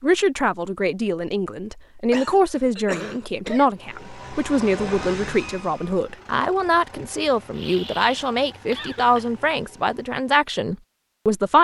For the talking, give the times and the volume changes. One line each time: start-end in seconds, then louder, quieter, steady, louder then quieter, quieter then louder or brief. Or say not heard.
0.0-11.5 steady.